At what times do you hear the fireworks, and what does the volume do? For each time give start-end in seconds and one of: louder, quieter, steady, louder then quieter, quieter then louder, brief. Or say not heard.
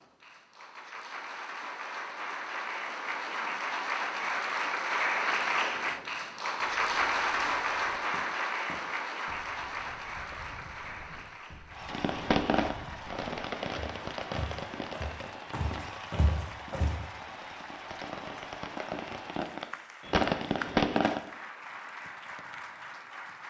11.8-21.2 quieter then louder.